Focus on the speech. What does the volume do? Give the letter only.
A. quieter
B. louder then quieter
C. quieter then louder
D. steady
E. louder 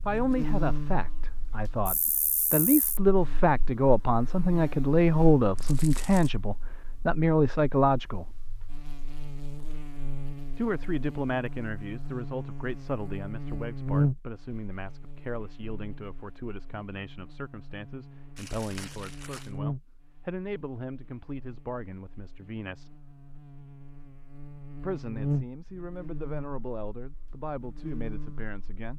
A.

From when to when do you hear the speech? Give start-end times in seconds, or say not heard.
0.0-8.3, 10.6-23.0, 24.8-28.9.